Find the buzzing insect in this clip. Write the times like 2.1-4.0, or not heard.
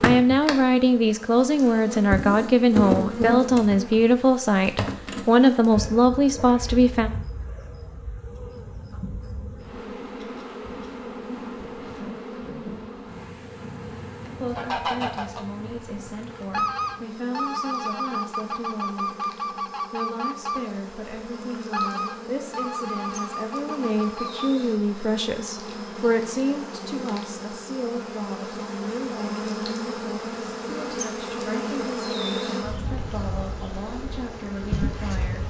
0.0-35.4.